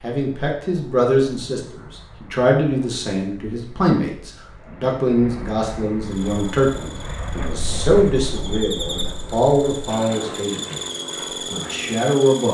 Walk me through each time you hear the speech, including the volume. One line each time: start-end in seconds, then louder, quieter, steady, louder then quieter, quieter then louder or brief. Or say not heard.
0.0-10.8 steady
11.5-12.4 brief.